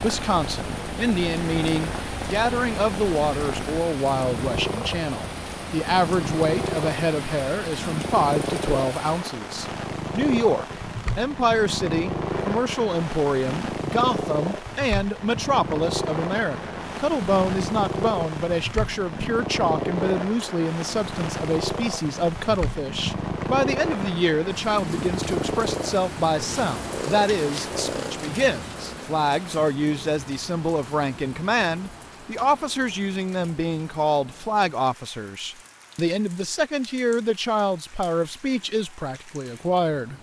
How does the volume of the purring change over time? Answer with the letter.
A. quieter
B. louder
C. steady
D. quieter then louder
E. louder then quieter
C.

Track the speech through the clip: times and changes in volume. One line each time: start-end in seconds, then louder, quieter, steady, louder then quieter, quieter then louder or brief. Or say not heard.
0.0-40.1 steady.